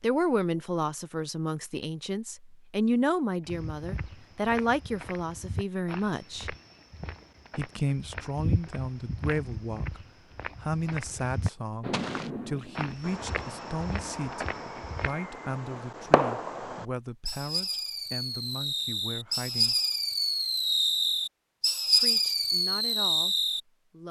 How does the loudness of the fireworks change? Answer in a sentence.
The loudness of the fireworks goes up.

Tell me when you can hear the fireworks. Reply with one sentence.
The fireworks can be heard from 11.8 to 23.6 s.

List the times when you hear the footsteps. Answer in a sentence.
You can hear the footsteps from 3.5 to 15.1 s.